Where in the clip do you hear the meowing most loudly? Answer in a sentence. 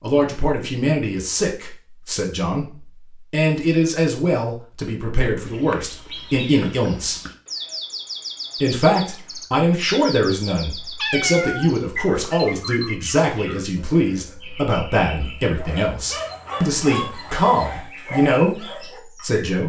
The loudest moment of the meowing is at 11 seconds.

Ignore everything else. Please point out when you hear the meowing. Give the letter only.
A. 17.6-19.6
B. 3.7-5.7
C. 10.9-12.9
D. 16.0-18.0
C.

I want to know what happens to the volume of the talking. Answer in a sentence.
The loudness of the talking stays about the same.